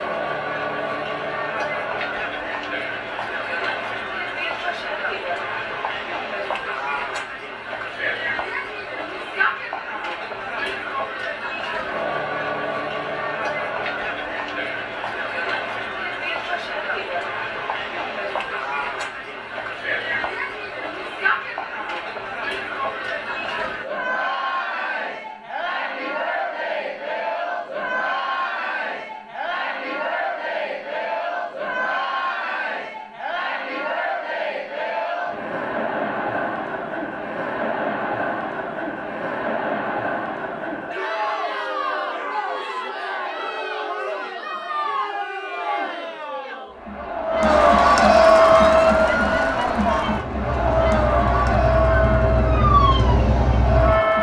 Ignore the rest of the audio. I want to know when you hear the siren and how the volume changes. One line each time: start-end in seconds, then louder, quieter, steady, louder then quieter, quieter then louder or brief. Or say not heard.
48.4-54.1 louder.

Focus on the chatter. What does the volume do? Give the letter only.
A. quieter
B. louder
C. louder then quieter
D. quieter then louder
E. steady
B.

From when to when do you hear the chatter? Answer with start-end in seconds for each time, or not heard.
0.0-54.1.